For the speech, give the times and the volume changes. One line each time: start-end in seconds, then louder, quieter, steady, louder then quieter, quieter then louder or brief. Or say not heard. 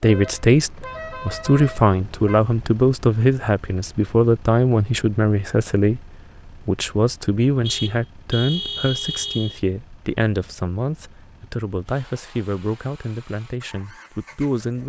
0.0-14.8 quieter.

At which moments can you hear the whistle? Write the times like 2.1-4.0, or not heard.
not heard.